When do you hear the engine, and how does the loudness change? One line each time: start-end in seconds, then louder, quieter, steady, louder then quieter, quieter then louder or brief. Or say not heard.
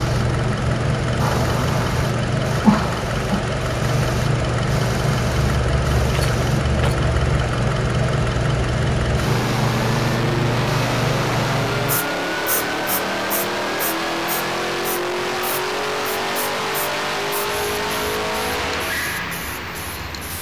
0.0-20.3 steady.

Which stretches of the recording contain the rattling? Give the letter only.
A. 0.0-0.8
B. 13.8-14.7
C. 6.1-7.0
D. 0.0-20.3
C.